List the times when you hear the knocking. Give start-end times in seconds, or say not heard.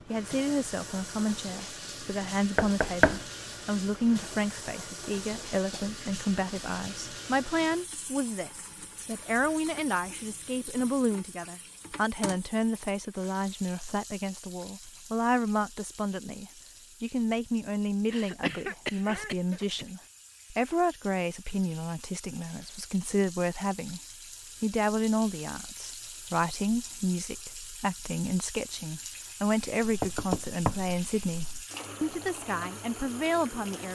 2.5-3.2, 29.8-31.6.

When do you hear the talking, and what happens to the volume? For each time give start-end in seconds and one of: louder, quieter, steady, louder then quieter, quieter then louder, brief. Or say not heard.
0.1-24.0 steady
24.6-33.9 steady.